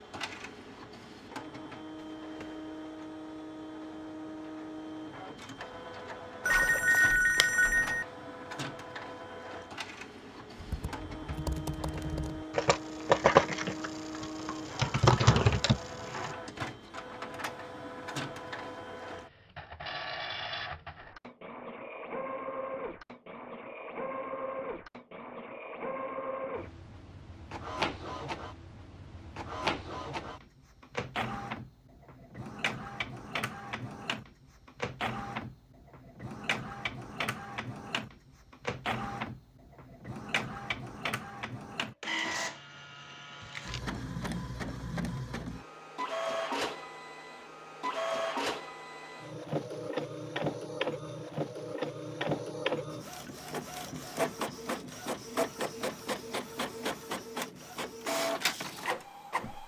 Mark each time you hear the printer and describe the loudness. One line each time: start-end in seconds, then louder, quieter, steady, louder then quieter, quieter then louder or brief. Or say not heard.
0.0-59.6 louder.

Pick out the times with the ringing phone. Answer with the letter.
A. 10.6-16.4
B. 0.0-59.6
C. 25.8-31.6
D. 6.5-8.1
D.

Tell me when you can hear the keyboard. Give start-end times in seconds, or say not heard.
10.6-16.4.